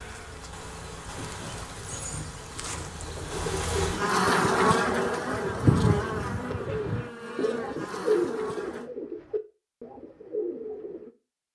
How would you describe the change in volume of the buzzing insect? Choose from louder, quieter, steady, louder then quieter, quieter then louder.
louder then quieter.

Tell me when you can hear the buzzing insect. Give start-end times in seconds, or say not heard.
0.0-8.9.